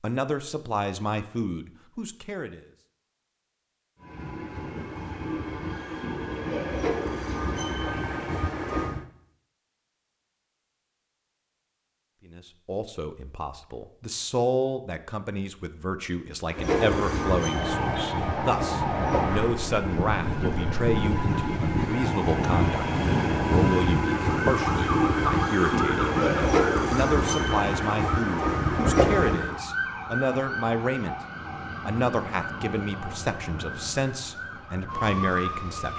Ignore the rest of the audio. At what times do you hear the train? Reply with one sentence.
The train can be heard from 4.0 to 9.1 s and from 16.5 to 29.6 s.